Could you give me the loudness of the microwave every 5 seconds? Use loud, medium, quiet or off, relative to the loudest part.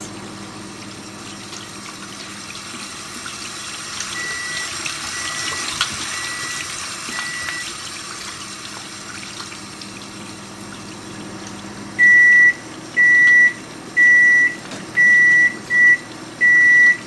quiet, quiet, loud, loud.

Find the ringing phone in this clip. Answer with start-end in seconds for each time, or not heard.
not heard.